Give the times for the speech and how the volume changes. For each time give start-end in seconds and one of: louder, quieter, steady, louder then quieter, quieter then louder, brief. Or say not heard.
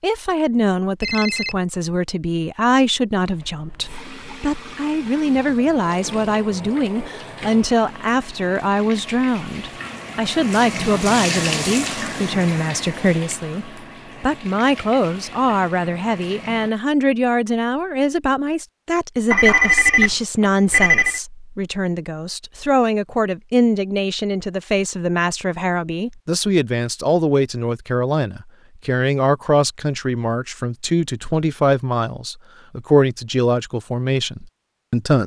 0.0-35.2 steady.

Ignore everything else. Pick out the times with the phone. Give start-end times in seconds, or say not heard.
1.0-1.6, 19.3-21.2.